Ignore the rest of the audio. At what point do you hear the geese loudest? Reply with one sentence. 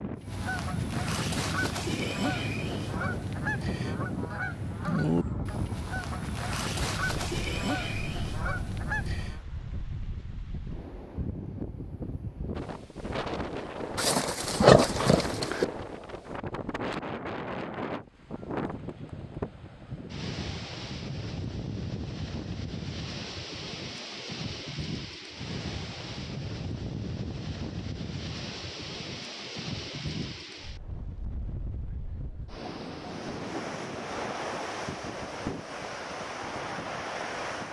The volume of the geese peaks at 5 seconds.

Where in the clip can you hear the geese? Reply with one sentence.
You can hear the geese from 0.1 to 9.4 s.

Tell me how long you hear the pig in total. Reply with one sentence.
You can hear the pig for 2 seconds altogether.